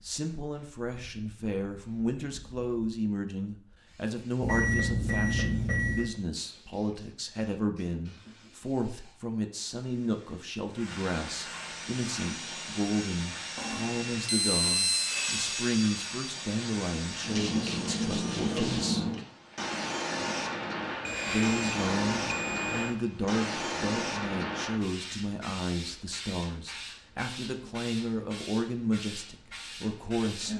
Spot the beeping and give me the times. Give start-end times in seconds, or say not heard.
4.4-6.2, 13.6-15.2, 21.1-22.9.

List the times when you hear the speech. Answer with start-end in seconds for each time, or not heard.
0.0-19.1, 21.2-30.5.